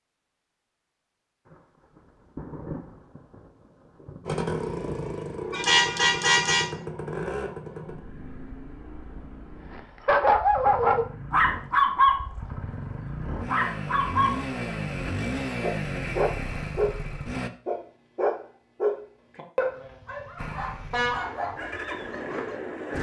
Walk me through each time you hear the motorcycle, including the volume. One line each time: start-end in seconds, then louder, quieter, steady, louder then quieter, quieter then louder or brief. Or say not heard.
4.2-17.5 quieter then louder
20.4-22.9 brief.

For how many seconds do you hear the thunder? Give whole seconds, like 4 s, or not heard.
4 s.